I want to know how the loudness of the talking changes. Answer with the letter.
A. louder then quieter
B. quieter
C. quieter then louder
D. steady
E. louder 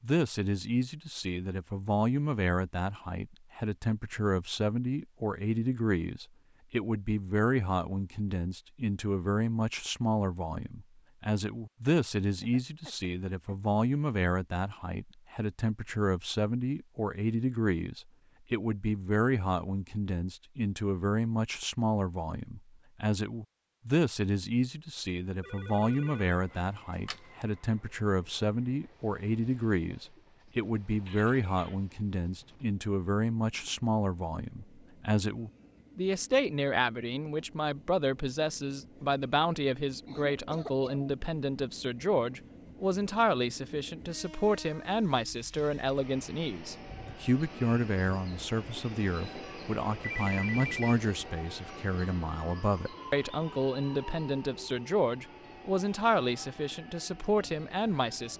D.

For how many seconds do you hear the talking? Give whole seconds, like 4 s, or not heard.
58 s.